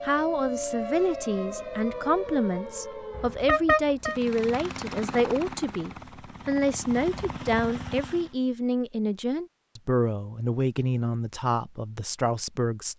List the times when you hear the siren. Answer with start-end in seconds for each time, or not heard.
0.0-3.5.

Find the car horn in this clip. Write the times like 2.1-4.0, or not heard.
3.1-4.2.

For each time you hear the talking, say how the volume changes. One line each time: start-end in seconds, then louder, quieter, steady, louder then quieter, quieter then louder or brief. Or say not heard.
0.0-12.9 steady.